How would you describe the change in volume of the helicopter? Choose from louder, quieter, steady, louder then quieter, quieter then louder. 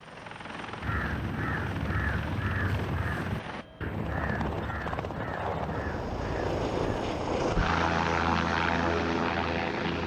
louder.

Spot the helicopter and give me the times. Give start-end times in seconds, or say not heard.
0.0-10.0.